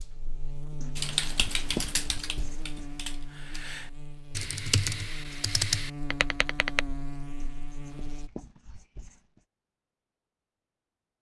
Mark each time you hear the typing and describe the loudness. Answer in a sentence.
The typing can be heard from 0.9 to 6.8 s, getting quieter then louder.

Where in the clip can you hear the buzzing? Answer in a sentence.
You can hear the buzzing from 0.0 to 8.3 s.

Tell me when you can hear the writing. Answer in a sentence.
You can hear the writing from 0.8 to 2.9 s and from 7.4 to 9.4 s.